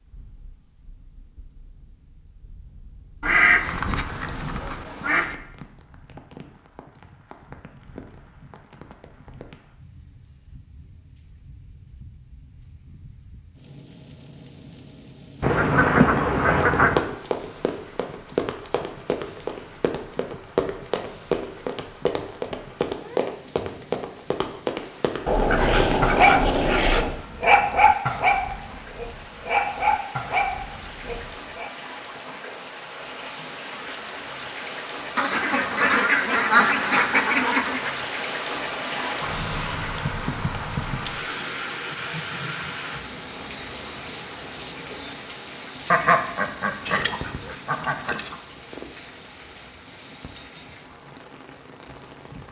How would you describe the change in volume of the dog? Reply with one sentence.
The loudness of the dog goes down.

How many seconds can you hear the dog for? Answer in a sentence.
You can hear the dog for 6 seconds altogether.